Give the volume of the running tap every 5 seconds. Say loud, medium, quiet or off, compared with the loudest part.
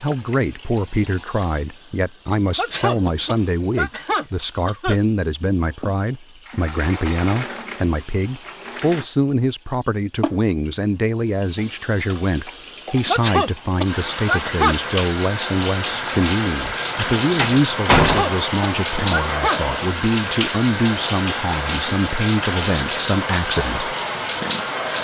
quiet, quiet, medium, loud, loud.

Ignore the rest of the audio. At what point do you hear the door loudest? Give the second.
18 s.